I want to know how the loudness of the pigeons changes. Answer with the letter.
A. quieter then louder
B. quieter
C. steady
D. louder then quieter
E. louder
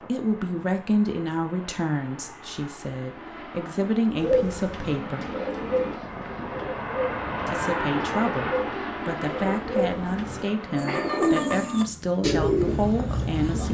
A.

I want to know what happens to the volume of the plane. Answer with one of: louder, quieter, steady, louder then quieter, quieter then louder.
louder then quieter.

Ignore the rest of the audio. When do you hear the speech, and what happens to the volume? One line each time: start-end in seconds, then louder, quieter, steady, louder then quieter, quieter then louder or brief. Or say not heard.
0.0-5.3 quieter then louder
7.5-13.6 steady.